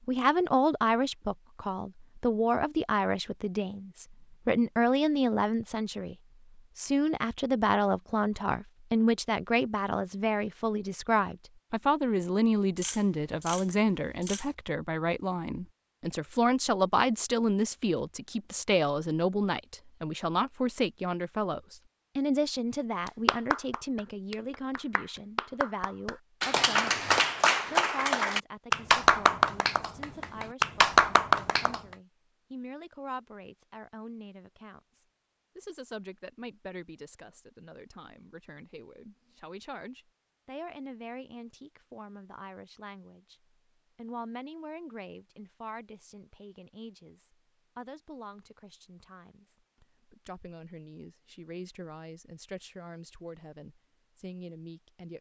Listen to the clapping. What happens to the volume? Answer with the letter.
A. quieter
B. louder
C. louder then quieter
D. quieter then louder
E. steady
B.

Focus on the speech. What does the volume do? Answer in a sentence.
The volume of the speech goes down.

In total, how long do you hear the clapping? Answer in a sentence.
The clapping can be heard for 9 seconds in total.